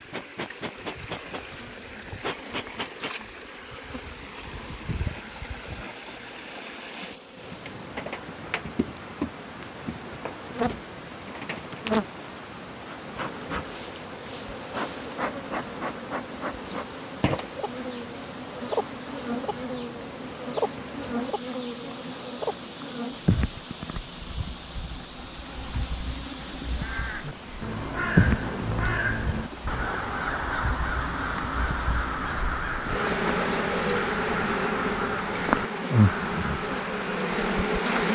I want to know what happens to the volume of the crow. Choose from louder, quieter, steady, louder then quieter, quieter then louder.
steady.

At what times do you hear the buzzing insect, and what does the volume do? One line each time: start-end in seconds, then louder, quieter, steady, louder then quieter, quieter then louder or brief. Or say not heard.
0.0-38.1 louder.